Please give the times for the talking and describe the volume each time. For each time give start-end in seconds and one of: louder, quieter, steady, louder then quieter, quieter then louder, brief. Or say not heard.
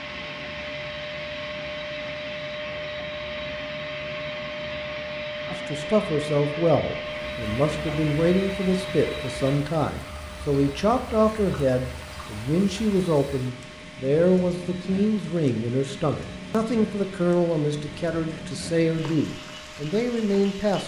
5.5-20.8 steady.